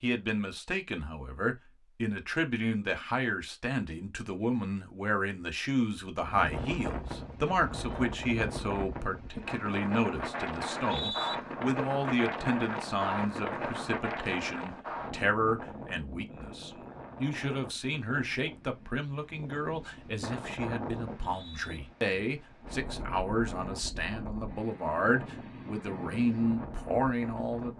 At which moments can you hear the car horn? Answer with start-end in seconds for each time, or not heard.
not heard.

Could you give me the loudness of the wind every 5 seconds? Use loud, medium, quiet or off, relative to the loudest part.
off, loud, loud, medium, medium, medium.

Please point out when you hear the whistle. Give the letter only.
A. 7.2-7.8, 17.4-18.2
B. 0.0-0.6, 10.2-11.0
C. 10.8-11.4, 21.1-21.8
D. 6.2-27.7
C.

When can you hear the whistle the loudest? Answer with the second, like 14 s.
11 s.